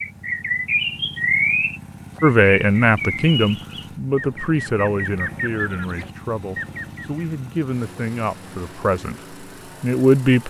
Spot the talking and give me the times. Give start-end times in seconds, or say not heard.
2.2-10.4.